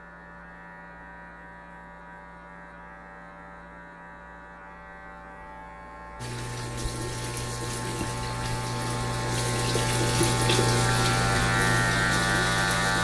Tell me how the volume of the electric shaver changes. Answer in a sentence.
The loudness of the electric shaver goes up.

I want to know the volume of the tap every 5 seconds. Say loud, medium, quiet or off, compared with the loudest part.
off, medium, loud.